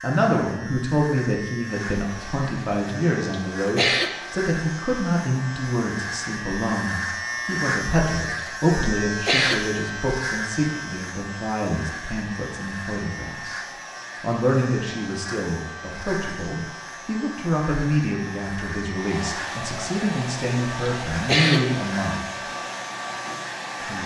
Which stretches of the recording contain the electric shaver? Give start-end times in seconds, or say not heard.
0.0-24.0.